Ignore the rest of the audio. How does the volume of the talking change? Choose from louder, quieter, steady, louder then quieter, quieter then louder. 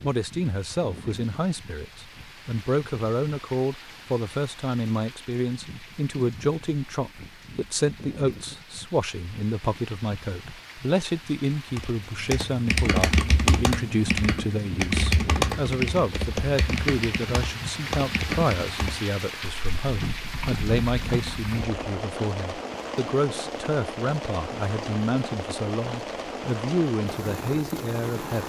steady.